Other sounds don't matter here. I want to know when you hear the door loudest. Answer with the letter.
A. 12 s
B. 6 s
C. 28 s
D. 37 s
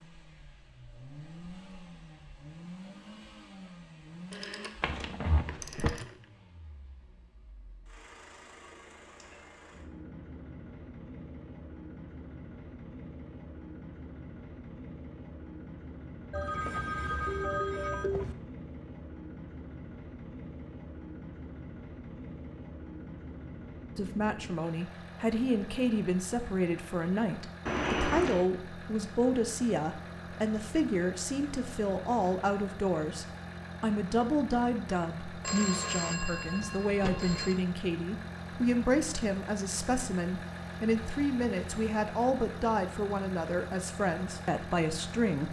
C.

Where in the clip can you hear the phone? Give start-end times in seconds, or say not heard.
4.3-4.8, 5.5-6.2, 16.3-18.4, 35.4-37.6.